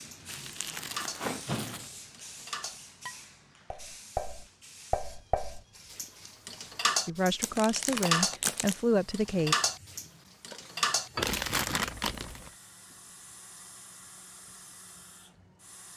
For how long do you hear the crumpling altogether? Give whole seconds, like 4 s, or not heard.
4 s.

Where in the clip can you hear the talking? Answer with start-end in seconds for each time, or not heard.
7.0-9.6.